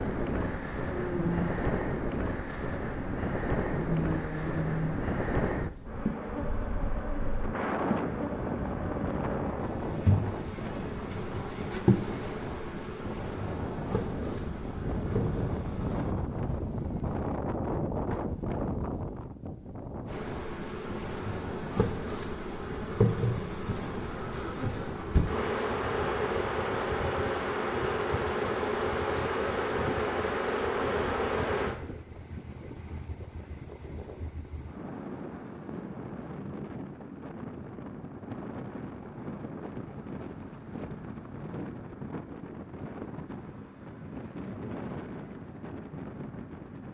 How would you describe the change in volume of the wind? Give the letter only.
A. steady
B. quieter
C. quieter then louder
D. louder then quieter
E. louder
B.